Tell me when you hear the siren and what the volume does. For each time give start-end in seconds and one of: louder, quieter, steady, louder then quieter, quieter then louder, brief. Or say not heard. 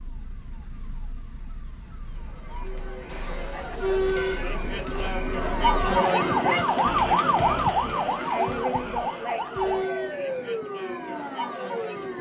0.0-12.1 louder then quieter.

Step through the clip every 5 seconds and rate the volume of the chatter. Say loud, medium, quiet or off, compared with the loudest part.
loud, loud, medium.